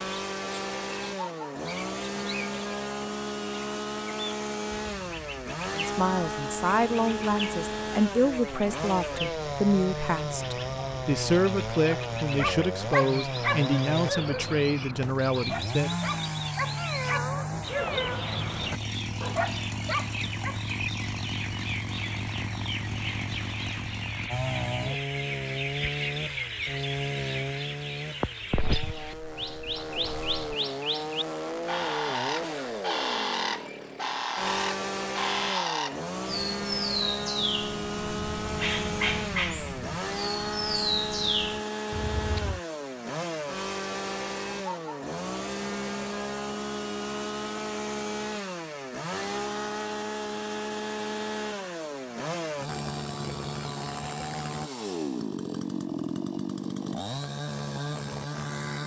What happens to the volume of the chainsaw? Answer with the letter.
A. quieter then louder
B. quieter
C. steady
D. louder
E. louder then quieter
C.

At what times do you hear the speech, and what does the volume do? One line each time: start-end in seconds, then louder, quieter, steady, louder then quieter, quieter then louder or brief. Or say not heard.
5.7-15.9 steady.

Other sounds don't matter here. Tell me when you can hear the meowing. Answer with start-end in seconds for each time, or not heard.
16.8-18.2.